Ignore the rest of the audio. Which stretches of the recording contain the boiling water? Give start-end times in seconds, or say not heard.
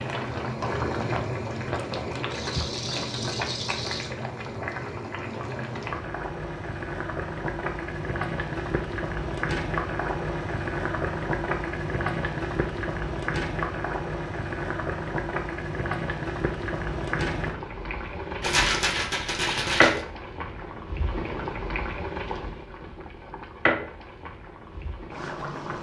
0.0-25.7.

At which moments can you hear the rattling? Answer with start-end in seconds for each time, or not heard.
2.3-4.1, 18.4-20.1.